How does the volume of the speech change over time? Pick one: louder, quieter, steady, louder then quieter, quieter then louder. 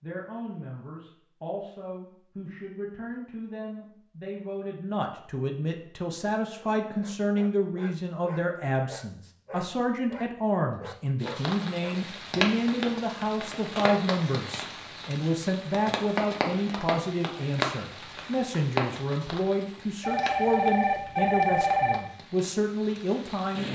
louder.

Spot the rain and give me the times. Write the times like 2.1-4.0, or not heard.
11.2-23.6.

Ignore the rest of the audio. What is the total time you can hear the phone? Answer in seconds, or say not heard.
2 s.